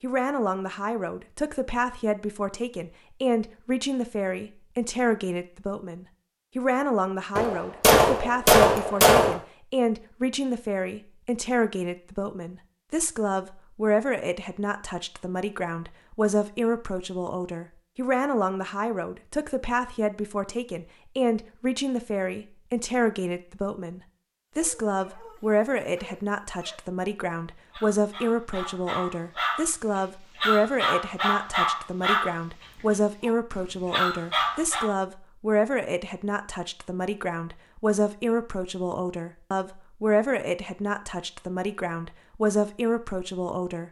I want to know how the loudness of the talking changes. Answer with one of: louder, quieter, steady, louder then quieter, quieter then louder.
steady.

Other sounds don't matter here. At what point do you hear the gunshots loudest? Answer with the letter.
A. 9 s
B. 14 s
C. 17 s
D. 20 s
A.